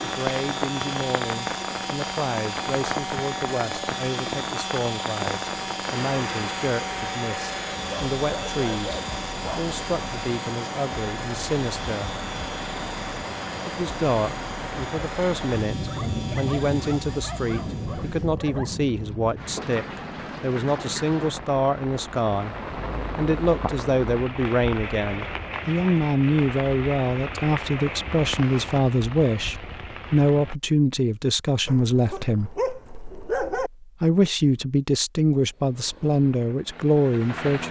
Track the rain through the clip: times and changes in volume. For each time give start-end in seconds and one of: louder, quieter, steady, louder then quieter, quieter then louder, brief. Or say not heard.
0.0-30.6 steady.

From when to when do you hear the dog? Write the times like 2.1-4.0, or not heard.
7.9-9.7, 15.8-18.8, 31.6-33.7.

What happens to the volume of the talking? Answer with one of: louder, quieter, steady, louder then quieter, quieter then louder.
louder.